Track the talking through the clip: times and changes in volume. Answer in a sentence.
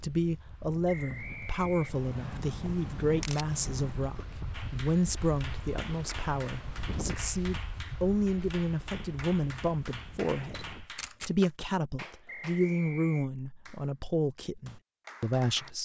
You can hear the talking from 0.0 to 15.8 s, at a steady volume.